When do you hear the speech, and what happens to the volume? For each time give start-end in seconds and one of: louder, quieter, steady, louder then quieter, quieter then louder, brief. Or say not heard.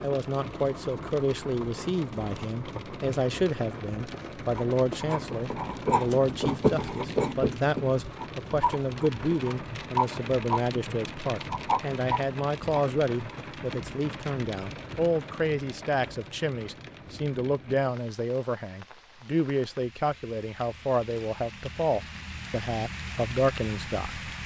0.0-24.3 steady.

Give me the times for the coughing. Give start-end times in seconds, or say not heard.
not heard.